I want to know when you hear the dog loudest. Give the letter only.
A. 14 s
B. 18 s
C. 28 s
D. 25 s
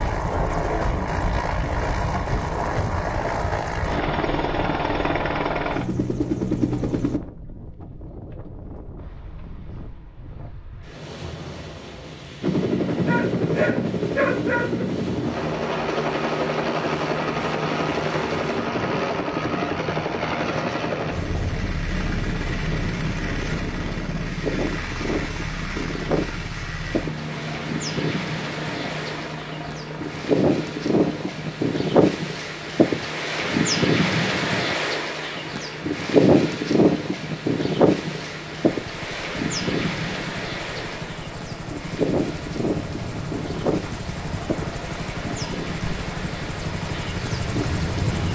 A.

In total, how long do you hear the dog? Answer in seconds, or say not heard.
2 s.